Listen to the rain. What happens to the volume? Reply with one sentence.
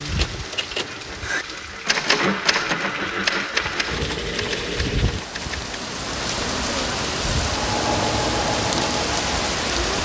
The loudness of the rain goes up.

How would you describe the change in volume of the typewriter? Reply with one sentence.
The volume of the typewriter goes up, then down.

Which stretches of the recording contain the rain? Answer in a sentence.
You can hear the rain from 0.0 to 9.9 s.